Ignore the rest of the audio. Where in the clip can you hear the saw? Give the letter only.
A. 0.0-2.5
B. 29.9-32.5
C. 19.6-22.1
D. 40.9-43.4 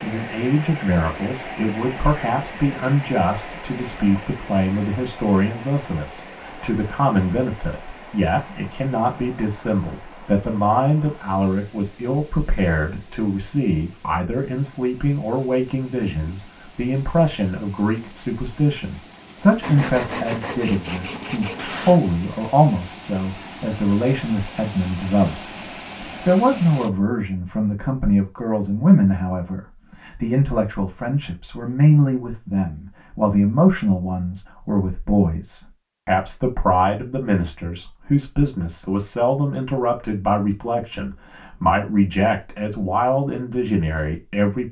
C.